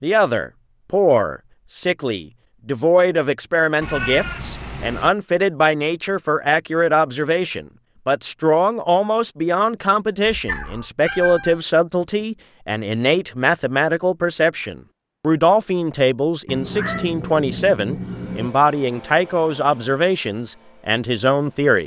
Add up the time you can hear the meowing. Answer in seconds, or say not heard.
5 s.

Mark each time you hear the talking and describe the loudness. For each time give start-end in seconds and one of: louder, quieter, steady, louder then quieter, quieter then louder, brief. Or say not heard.
0.0-21.8 steady.